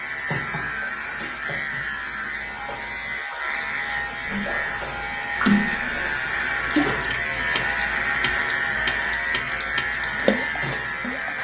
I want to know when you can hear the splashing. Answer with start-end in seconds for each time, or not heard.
4.2-11.3.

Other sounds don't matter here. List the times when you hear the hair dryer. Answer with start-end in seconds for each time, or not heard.
not heard.